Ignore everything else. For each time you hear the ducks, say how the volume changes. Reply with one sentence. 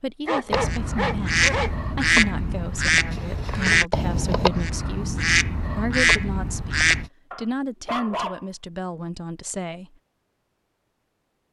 The ducks can be heard from 0.5 to 7.1 s, at a steady volume.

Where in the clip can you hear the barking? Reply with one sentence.
The barking can be heard from 0.2 to 1.7 s and from 7.3 to 8.4 s.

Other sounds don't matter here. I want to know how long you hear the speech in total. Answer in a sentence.
You can hear the speech for 10 seconds altogether.